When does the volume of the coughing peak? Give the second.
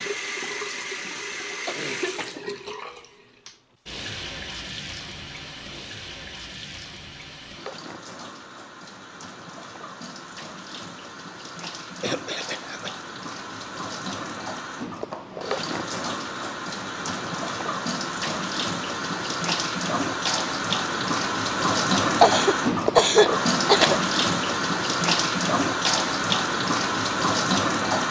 23 s.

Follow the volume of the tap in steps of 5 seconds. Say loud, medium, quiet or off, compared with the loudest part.
medium, quiet, quiet, medium, loud, loud.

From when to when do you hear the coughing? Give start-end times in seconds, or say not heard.
1.1-2.8, 12.0-12.9, 22.2-24.0.